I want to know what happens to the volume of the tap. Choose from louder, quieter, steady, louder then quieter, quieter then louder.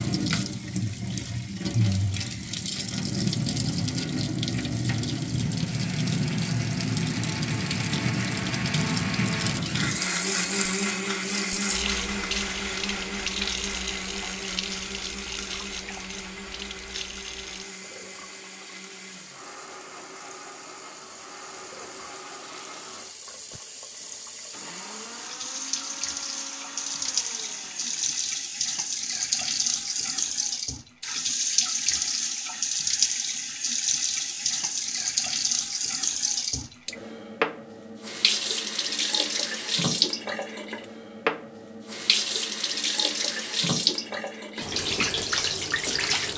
quieter then louder.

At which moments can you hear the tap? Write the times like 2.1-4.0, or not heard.
0.0-46.3.